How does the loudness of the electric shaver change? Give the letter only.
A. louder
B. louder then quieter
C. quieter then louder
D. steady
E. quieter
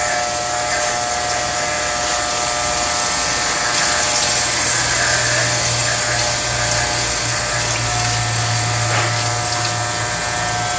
D.